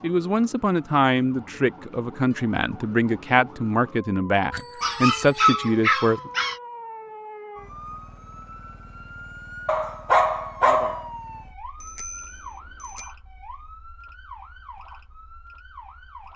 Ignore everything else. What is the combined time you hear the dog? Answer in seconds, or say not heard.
3 s.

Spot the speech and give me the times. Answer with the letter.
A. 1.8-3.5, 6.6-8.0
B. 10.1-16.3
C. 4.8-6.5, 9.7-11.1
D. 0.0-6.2
D.